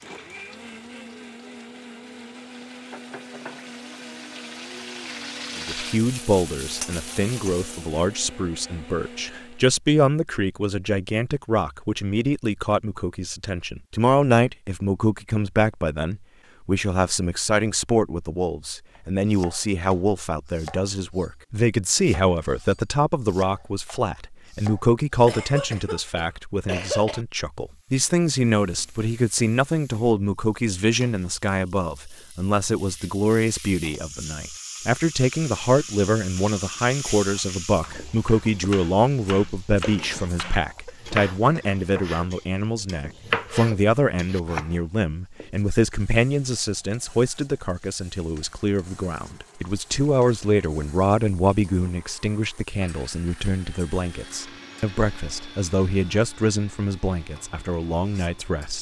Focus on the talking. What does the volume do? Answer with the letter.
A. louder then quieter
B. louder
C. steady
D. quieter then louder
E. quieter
C.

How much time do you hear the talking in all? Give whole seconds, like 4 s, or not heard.
53 s.